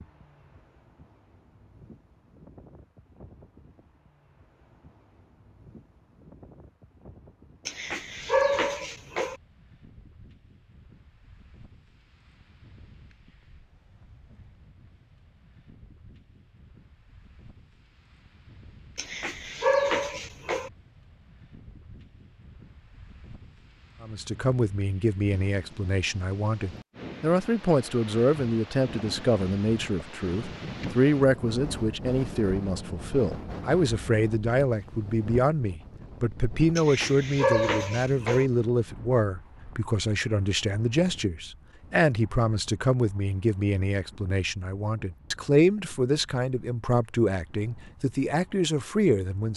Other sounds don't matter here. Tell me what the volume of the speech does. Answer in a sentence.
The volume of the speech stays about the same.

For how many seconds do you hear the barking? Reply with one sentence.
You can hear the barking for 5 seconds altogether.